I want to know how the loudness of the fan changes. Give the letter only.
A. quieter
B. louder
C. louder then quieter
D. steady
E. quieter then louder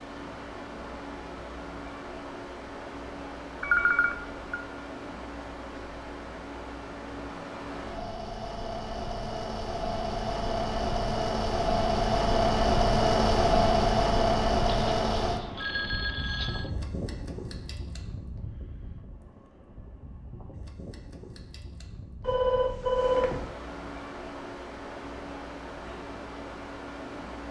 C.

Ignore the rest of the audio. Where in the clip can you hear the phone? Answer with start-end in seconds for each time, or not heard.
3.6-4.7, 14.7-16.7, 22.2-23.5.